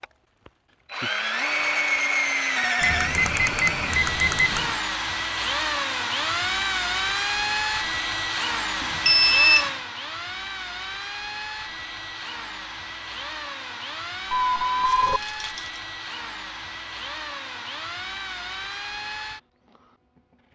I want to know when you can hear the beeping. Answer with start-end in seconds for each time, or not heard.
2.8-4.8, 8.8-9.7, 14.3-15.2.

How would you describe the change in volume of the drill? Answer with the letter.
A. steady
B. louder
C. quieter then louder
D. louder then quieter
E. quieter
E.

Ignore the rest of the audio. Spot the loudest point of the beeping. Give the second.
9 s.